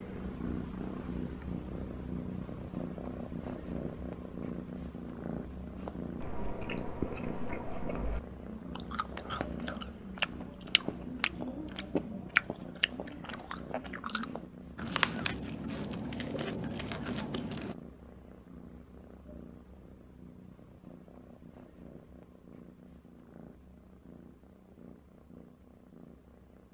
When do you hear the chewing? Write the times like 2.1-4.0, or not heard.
5.8-17.8.